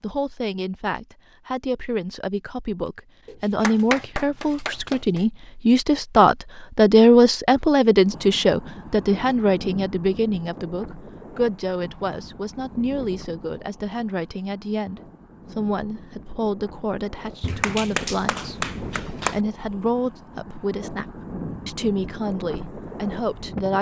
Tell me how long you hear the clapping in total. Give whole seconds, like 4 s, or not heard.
4 s.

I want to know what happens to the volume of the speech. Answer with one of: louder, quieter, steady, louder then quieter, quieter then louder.
louder then quieter.